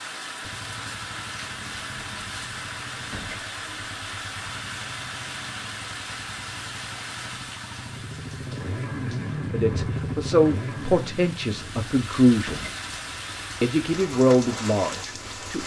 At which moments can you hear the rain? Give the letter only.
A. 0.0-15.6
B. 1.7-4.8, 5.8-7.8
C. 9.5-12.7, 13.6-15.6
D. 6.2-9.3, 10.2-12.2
A.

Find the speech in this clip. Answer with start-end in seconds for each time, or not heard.
9.5-12.7, 13.6-15.6.